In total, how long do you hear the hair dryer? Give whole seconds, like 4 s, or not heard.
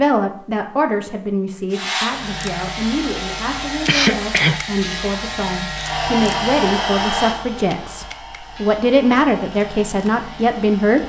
9 s.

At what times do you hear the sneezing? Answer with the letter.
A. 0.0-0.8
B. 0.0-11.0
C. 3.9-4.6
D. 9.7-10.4
C.